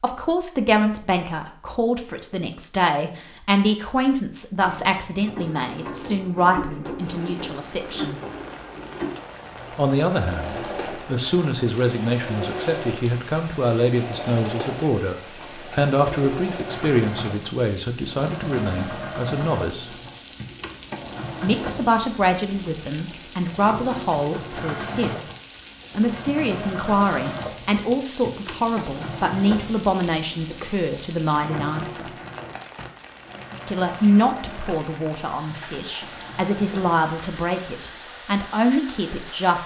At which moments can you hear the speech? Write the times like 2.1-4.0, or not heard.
0.0-8.2, 9.8-19.9, 21.4-25.1, 25.9-32.1, 33.6-39.6.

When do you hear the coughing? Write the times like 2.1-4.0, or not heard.
not heard.